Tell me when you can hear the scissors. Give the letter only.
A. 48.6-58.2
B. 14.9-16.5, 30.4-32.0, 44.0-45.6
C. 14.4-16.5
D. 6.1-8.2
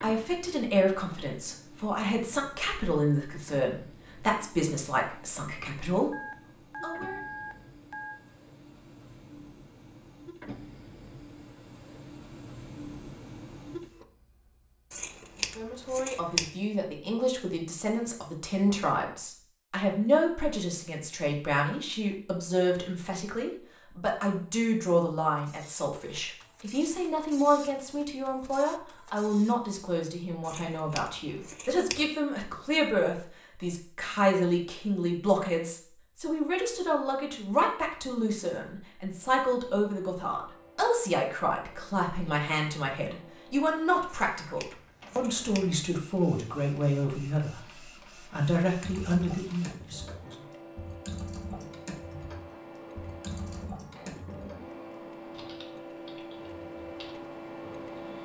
B.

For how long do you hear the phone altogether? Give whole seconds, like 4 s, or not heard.
2 s.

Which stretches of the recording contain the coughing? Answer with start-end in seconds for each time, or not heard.
not heard.